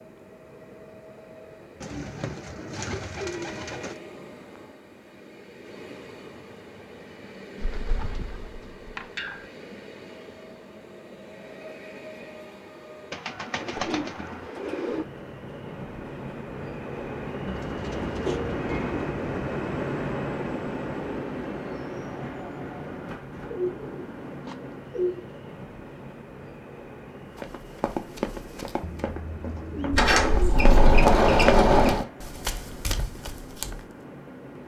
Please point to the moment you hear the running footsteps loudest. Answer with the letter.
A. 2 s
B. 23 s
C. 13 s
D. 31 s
D.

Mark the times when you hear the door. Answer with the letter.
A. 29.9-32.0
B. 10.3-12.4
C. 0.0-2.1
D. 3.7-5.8
A.